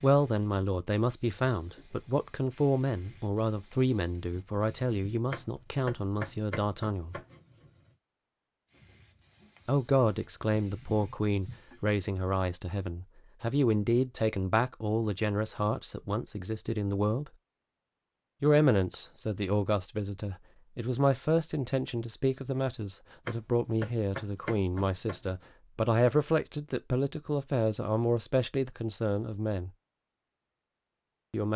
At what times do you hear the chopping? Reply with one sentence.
You can hear the chopping from 5.3 to 7.7 s and from 23.2 to 25.4 s.